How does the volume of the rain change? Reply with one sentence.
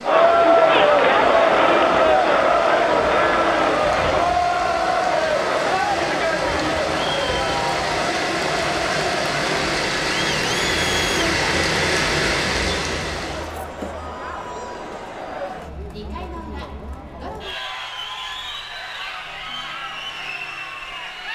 The volume of the rain goes up.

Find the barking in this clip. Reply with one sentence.
The barking can't be heard in this clip.